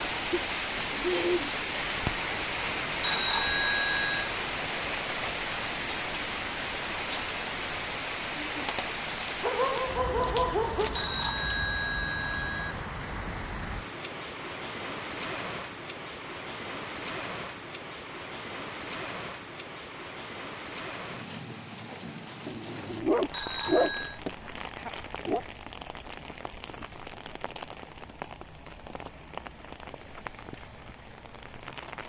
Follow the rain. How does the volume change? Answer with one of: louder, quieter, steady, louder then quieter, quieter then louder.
quieter.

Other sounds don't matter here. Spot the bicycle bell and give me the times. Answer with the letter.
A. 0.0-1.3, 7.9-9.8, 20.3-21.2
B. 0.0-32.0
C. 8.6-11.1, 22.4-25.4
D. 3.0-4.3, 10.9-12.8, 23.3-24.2
D.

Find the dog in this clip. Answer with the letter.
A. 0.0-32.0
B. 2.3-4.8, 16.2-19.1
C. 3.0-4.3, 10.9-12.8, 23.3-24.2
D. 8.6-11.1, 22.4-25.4
D.